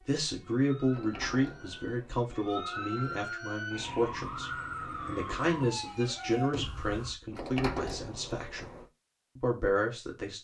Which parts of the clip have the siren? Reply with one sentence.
You can hear the siren from 0.0 to 7.2 s.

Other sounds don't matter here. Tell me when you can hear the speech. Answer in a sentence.
You can hear the speech from 0.1 to 8.7 s and from 9.3 to 10.3 s.